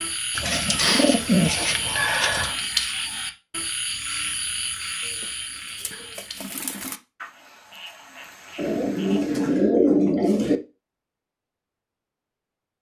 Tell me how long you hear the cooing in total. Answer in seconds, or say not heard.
6 s.